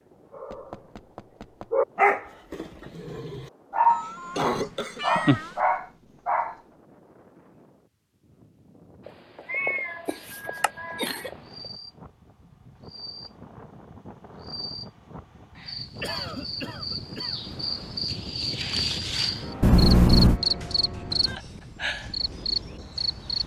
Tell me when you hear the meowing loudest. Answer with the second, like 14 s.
20 s.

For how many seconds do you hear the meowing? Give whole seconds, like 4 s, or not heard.
5 s.